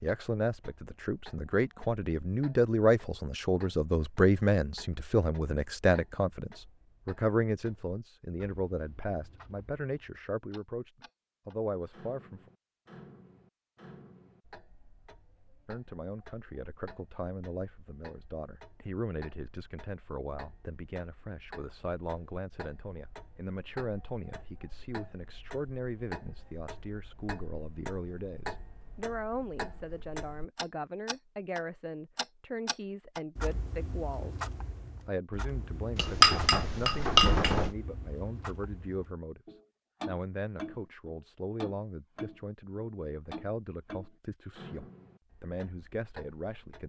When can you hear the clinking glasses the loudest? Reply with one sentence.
The volume of the clinking glasses peaks at 36 seconds.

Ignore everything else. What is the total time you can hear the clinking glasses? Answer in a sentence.
The clinking glasses can be heard for 2 seconds in total.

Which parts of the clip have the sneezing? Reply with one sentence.
You can't hear the sneezing here.